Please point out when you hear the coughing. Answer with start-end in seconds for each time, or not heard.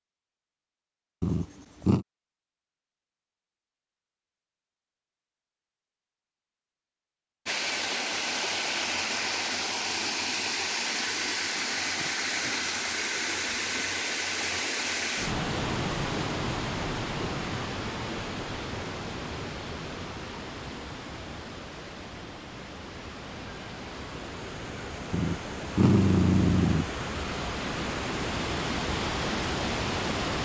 not heard.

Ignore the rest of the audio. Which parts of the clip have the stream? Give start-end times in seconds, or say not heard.
7.5-30.4.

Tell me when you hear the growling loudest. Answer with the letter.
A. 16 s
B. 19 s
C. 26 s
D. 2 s
C.